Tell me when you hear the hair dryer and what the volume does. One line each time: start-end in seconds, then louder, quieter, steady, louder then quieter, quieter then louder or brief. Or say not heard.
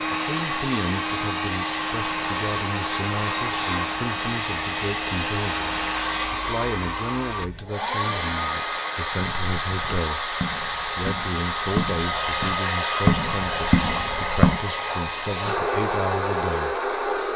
0.0-17.3 steady.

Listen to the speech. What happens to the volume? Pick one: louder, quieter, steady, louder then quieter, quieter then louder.
steady.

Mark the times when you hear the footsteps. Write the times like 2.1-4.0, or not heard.
9.2-14.6.